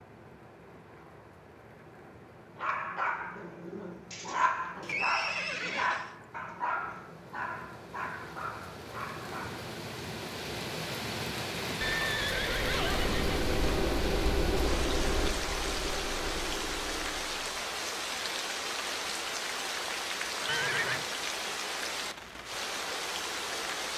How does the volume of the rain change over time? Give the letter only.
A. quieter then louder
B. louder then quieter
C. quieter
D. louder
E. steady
D.